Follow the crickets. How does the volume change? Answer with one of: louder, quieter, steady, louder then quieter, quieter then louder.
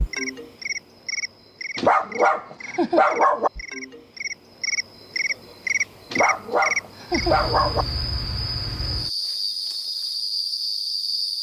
louder.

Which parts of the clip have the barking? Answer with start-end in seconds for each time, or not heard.
1.8-3.5, 6.1-7.8.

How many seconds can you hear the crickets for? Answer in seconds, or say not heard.
11 s.